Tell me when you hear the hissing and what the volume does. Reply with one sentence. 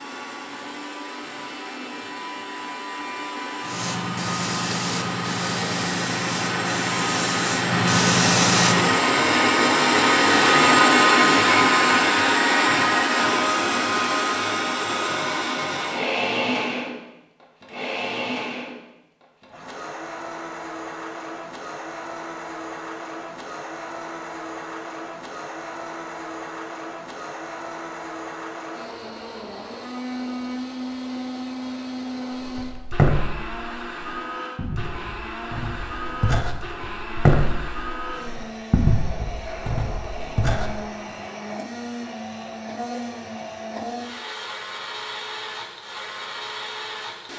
The hissing can be heard from 3.6 to 9.0 s, getting louder.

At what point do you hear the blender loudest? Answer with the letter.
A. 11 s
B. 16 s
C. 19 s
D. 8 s
A.